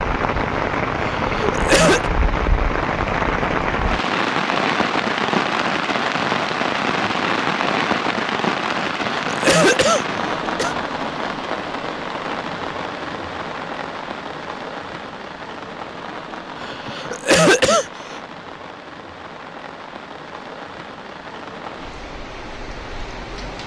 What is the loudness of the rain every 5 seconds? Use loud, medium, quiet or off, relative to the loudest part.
loud, loud, medium, quiet, quiet.